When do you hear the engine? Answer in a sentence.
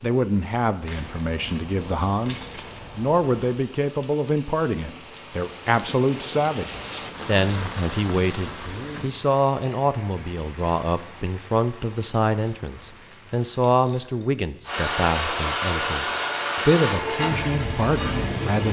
You can hear the engine from 14.7 to 18.6 s.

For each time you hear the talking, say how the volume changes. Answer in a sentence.
You can hear the talking from 0.0 to 18.6 s, at a steady volume.